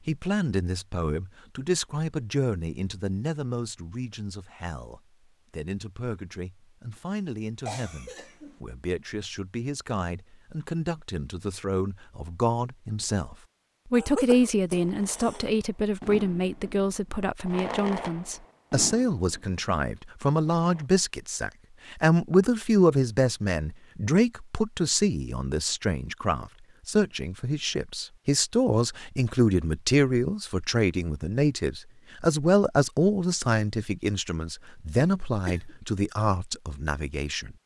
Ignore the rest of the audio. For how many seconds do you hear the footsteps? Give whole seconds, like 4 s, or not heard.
not heard.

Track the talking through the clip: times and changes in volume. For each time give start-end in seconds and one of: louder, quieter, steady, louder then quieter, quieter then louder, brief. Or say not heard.
0.1-37.5 louder.